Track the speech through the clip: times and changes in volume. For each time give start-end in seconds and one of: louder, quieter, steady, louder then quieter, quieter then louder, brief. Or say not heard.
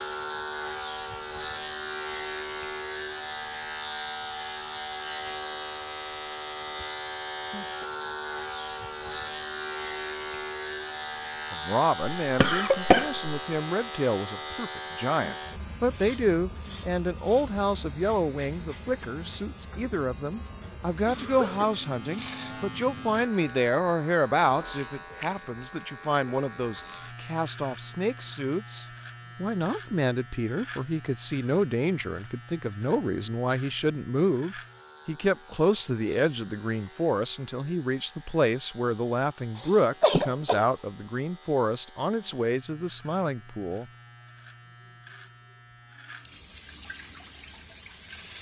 11.5-43.9 steady.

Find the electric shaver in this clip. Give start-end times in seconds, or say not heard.
0.0-48.3.